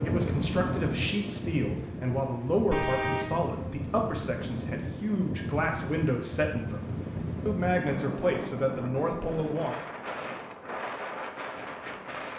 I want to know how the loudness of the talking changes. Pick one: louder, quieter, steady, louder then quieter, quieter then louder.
steady.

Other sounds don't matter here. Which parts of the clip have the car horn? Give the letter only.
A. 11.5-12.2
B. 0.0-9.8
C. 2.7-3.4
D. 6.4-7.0
C.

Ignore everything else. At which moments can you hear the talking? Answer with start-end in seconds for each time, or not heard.
0.0-9.8.